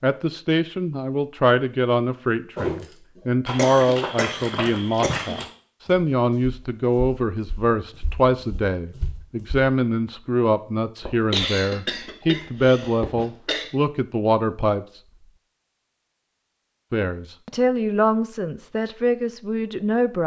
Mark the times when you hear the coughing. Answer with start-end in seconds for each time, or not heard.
3.1-5.4, 11.0-13.7.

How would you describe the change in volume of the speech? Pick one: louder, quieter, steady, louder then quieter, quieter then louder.
steady.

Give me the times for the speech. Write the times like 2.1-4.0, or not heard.
0.0-15.0, 16.9-20.2.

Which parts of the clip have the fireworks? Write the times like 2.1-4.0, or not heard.
not heard.